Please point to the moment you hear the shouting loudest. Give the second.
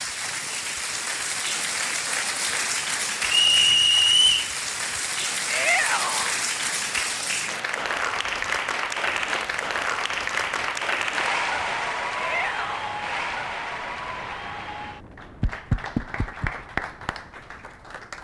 6 s.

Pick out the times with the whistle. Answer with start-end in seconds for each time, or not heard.
3.2-4.5.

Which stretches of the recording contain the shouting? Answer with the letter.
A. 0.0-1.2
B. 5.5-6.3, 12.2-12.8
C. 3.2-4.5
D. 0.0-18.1
B.